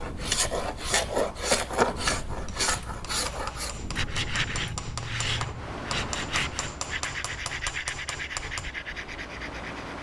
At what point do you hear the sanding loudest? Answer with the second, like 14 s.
2 s.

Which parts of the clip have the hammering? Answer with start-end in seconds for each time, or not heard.
2.4-8.8.